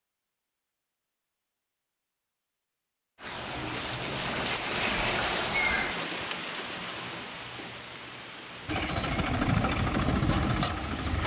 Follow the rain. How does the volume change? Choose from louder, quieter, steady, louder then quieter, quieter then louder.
quieter.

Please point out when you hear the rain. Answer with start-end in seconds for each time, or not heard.
3.1-11.2.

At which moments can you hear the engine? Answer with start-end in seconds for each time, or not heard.
8.7-11.2.